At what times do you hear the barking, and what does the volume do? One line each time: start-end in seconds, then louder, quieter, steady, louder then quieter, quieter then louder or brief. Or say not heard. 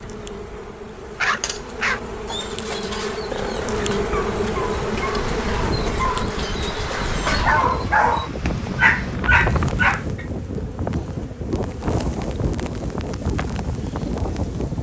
1.2-10.2 quieter then louder.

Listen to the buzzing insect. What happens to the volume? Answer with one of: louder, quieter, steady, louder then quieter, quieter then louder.
louder then quieter.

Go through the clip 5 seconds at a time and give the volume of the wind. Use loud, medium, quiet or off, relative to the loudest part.
medium, loud, loud.